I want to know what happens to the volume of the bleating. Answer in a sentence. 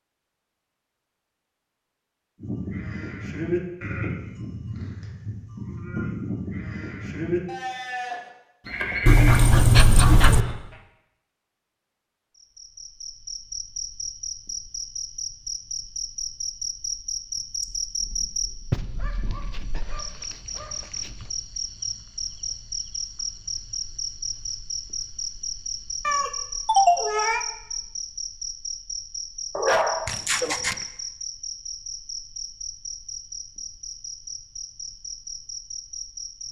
The volume of the bleating goes down, then up.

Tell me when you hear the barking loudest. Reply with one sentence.
The volume of the barking peaks at 10 seconds.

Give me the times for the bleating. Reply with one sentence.
You can hear the bleating from 2.4 to 10.8 s.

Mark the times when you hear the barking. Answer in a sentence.
The barking can be heard from 9.1 to 10.4 s, from 18.7 to 21.2 s and from 29.6 to 30.9 s.